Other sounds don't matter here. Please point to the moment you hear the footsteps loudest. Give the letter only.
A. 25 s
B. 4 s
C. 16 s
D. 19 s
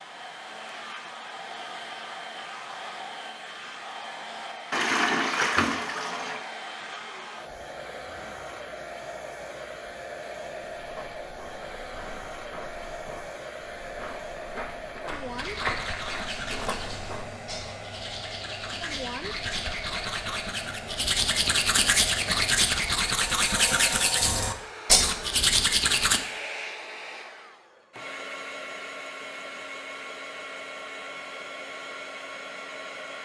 C.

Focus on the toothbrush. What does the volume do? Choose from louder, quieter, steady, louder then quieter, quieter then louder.
louder.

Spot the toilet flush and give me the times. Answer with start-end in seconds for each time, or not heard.
4.7-6.5.